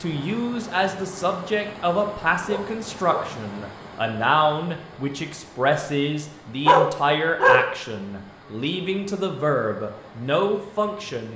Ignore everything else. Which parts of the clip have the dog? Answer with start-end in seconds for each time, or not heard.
2.5-3.4, 6.7-7.8.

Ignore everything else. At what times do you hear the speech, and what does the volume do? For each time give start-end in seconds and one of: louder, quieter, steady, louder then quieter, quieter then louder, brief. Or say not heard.
0.0-11.3 steady.